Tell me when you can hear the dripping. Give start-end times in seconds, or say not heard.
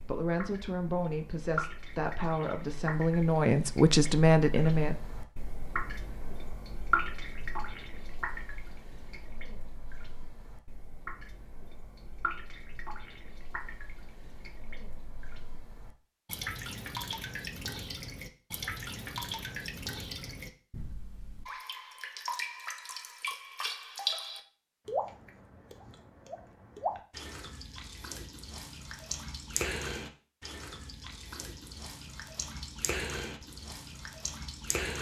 0.0-34.9.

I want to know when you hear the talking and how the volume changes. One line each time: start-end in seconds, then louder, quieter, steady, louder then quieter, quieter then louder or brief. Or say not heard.
0.0-5.0 louder.